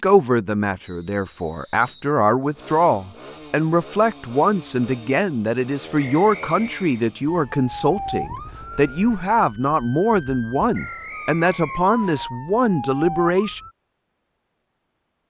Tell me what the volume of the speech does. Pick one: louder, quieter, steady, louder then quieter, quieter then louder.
steady.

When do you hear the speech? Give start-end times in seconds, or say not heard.
0.0-13.6.